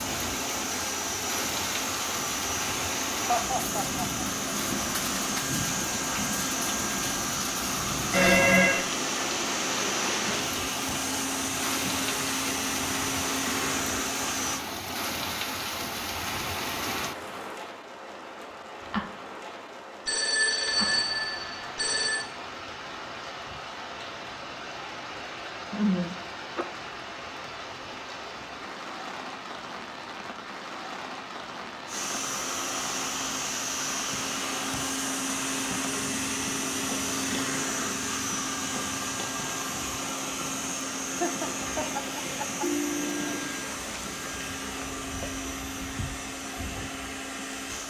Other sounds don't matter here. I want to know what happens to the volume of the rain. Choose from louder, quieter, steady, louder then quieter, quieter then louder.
quieter.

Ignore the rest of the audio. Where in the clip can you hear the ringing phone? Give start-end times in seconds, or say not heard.
8.1-8.8, 20.1-22.3, 42.6-43.5.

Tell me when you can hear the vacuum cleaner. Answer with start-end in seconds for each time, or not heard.
0.0-14.7, 31.9-47.8.